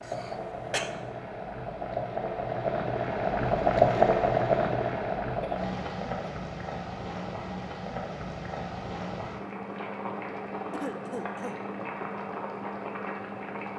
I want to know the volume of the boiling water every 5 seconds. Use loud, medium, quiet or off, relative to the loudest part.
loud, medium, medium.